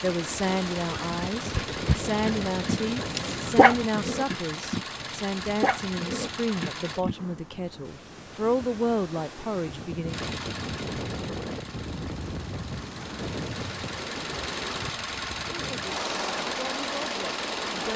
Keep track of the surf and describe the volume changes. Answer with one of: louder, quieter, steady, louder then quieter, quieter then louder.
quieter then louder.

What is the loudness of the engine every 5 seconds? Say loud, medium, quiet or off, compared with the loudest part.
loud, loud, medium, loud.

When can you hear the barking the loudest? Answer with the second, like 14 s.
4 s.